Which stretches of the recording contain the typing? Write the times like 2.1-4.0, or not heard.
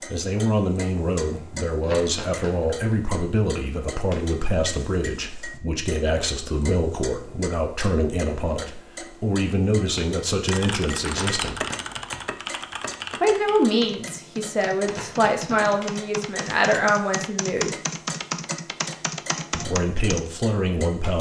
10.4-20.3.